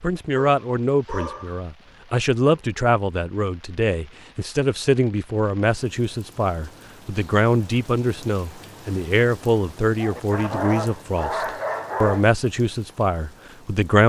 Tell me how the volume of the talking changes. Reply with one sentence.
The loudness of the talking stays about the same.